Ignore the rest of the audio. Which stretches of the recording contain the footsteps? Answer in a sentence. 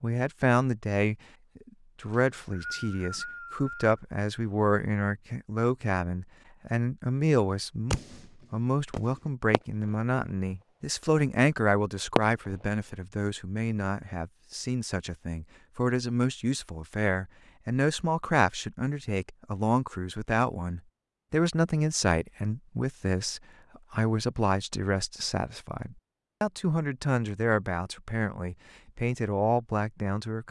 The footsteps can't be heard in this clip.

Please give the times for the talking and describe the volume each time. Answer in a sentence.
The talking can be heard from 0.0 to 30.4 s, at a steady volume.